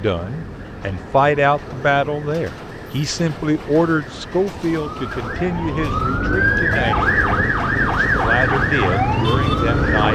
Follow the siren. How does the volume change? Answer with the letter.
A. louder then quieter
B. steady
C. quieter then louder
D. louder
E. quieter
D.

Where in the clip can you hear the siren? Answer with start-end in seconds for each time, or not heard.
0.0-10.1.